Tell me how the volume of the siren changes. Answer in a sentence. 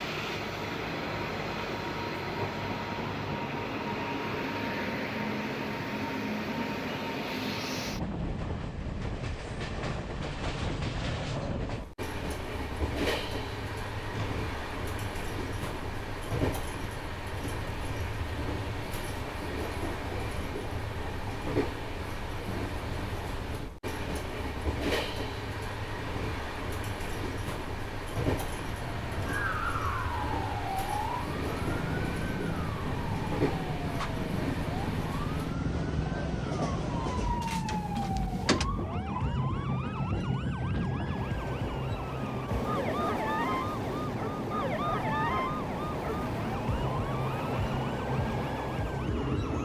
The volume of the siren stays about the same.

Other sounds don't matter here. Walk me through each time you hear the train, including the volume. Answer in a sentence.
The train can be heard from 0.0 to 49.6 s, at a steady volume.